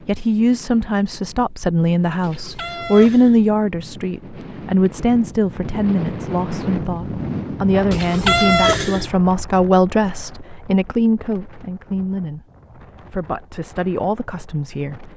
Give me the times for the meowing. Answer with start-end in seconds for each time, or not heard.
2.2-3.4, 7.9-9.1.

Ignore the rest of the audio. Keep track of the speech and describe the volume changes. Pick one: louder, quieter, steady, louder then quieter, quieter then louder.
quieter.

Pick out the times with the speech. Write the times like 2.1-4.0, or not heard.
0.1-15.1.